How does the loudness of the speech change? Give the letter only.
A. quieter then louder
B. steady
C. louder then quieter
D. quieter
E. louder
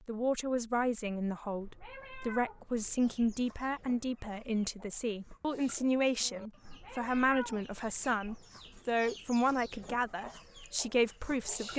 B.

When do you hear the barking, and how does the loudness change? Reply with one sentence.
The barking can't be heard in this clip.